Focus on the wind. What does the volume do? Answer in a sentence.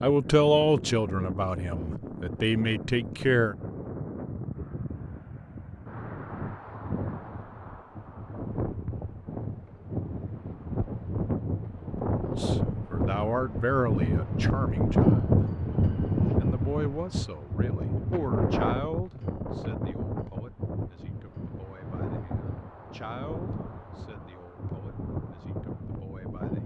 The volume of the wind goes up, then down.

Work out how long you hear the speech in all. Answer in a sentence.
The speech can be heard for 17 seconds in total.